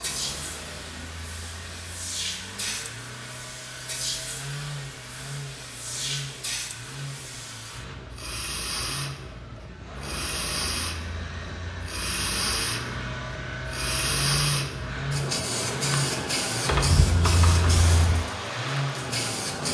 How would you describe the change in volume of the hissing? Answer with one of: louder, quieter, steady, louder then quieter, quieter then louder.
louder.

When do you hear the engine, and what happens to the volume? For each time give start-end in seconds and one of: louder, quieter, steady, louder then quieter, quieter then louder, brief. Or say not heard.
0.0-19.6 louder.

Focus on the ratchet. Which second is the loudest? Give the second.
17 s.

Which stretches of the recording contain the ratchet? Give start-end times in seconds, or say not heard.
16.6-18.2.